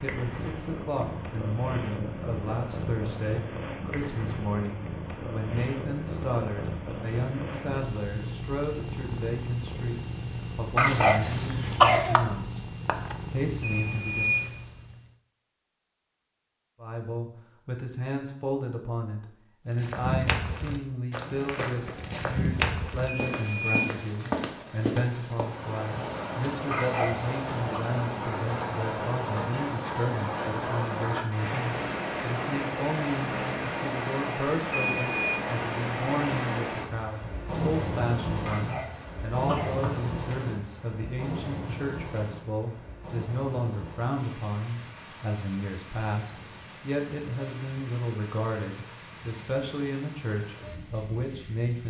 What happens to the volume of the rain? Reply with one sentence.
The loudness of the rain goes down.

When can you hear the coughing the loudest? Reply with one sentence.
The volume of the coughing peaks at 12 seconds.